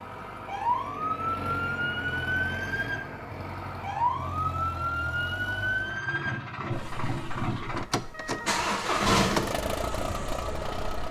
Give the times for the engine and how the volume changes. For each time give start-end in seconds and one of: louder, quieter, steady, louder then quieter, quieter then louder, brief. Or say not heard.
0.0-11.0 louder.